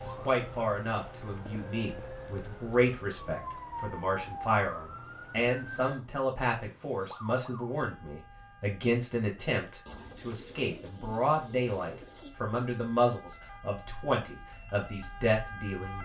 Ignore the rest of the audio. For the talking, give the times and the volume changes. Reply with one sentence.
The talking can be heard from 0.0 to 16.0 s, at a steady volume.